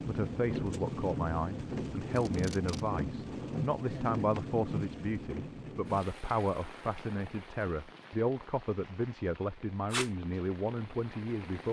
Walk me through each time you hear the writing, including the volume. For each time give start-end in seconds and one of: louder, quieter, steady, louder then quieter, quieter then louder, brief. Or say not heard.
not heard.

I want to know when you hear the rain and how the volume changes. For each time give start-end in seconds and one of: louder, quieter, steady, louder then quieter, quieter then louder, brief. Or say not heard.
0.0-11.6 quieter.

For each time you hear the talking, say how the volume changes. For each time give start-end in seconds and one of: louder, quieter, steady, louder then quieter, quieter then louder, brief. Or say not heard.
0.0-11.6 steady.